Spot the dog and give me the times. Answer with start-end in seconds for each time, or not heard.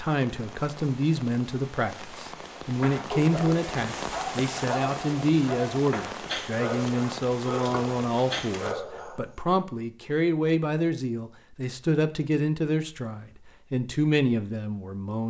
2.8-9.6.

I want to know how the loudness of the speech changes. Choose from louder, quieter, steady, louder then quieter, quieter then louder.
steady.